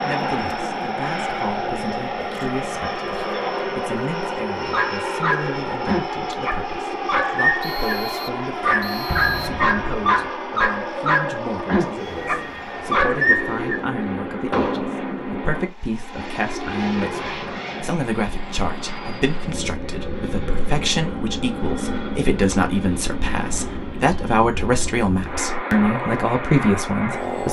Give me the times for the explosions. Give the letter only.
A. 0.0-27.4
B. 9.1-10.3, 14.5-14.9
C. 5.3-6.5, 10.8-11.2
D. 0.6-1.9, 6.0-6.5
B.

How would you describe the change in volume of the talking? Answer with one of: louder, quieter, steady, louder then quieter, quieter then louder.
louder.